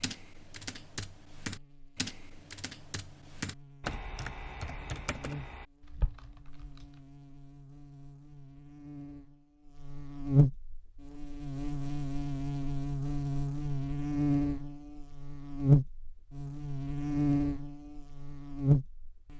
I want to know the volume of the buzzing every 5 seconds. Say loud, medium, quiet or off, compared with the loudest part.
quiet, quiet, loud, loud.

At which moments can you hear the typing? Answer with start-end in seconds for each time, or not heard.
0.0-6.9.